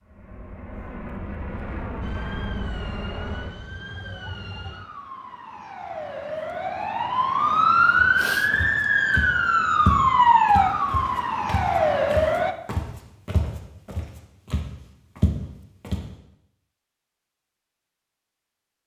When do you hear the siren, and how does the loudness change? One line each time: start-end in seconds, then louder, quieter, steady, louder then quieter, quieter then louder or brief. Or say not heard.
2.0-12.6 louder.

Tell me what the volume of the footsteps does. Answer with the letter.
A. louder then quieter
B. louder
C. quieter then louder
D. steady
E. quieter
C.